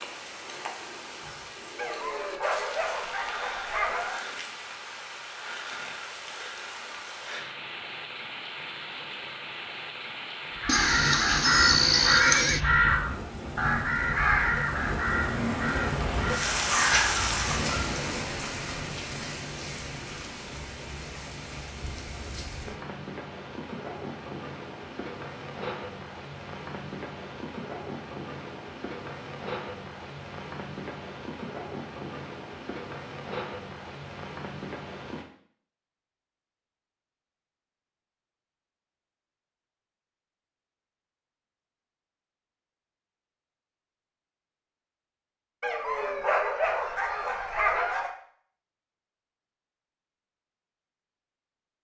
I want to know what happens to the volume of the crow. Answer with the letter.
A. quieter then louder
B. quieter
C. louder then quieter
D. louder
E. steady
B.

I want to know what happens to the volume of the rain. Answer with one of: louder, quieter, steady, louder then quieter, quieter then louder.
louder then quieter.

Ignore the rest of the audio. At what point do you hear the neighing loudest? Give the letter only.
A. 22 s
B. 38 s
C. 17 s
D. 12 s
D.